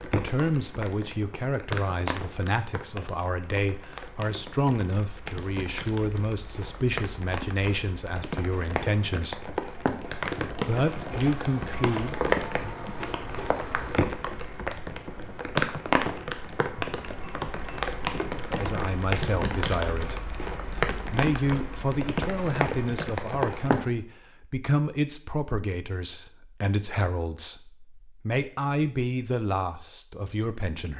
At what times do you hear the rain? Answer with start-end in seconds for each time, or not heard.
0.0-23.8.